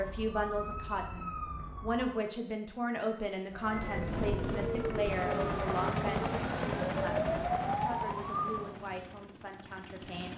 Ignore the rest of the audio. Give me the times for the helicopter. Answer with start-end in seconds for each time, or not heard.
3.6-10.3.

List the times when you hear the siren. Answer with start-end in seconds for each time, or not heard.
0.0-2.2, 3.5-8.7.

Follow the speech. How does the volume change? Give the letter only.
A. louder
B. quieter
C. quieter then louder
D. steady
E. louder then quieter
B.